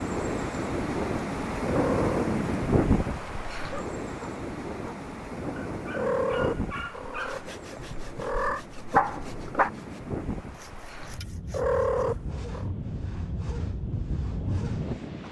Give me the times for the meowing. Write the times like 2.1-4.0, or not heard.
1.6-2.3, 5.9-8.7, 11.5-12.7.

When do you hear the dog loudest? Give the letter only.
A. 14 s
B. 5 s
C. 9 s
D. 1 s
C.